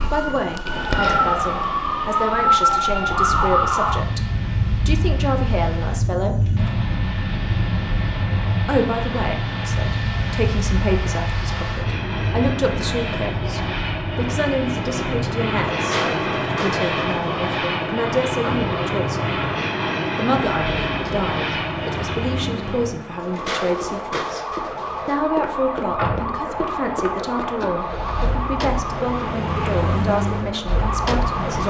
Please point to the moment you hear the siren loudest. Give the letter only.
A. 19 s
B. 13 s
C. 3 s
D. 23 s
C.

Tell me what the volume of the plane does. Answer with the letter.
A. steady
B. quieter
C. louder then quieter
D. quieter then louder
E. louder
E.